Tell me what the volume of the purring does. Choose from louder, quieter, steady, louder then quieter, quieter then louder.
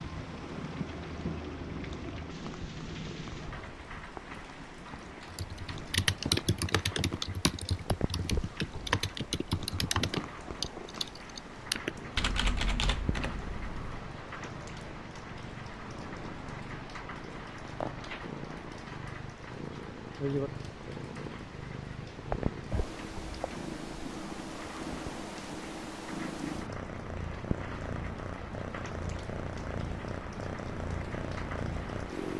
louder.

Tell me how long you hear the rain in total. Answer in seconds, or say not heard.
32 s.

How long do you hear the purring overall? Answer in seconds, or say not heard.
32 s.